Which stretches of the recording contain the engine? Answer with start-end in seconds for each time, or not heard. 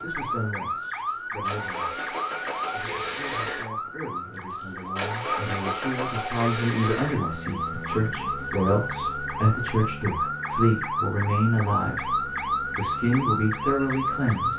0.0-14.5.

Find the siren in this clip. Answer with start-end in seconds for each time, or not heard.
0.0-14.5.